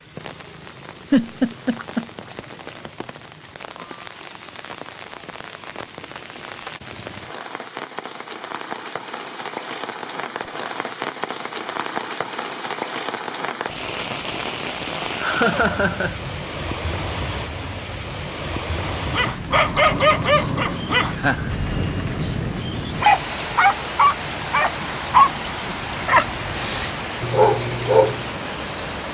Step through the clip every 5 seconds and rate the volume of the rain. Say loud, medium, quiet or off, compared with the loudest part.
medium, medium, loud, loud, loud, loud.